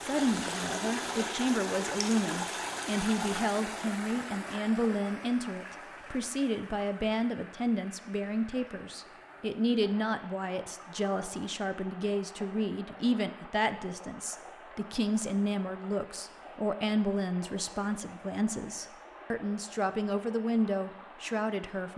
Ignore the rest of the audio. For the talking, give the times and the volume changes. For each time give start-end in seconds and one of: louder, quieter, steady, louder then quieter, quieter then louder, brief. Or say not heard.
0.0-21.9 steady.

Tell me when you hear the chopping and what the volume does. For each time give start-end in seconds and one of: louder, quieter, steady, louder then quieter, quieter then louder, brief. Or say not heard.
not heard.